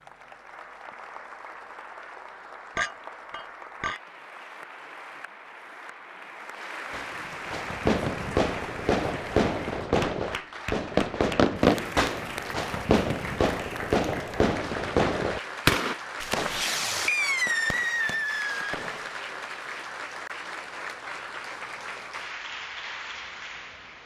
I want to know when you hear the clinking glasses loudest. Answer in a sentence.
The loudest moment of the clinking glasses is at 3 seconds.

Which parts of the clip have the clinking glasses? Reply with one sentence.
You can hear the clinking glasses from 2.8 to 4.0 s.